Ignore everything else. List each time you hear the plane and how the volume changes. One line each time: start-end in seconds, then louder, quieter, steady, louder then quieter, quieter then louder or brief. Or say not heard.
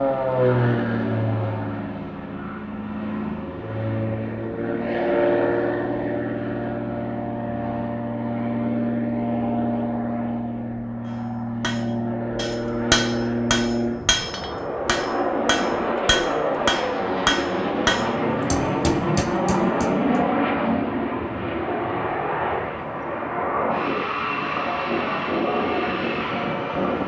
0.0-27.0 steady.